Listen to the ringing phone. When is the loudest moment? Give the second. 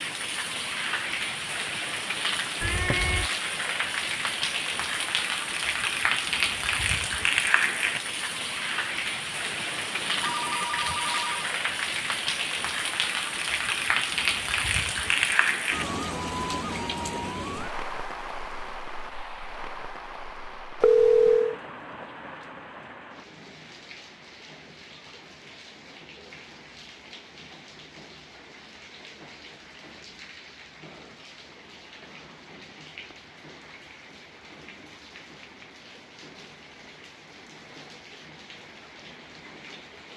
21 s.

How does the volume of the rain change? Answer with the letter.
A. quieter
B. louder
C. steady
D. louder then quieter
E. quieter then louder
A.